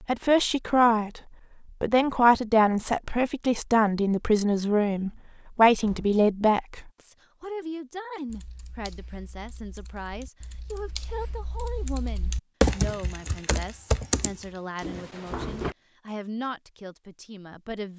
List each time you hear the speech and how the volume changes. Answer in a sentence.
The speech can be heard briefly from 0.0 to 1.2 s; and from 1.8 to 17.9 s, getting quieter.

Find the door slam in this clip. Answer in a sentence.
You can hear the door slam from 5.8 to 6.2 s and from 14.8 to 15.8 s.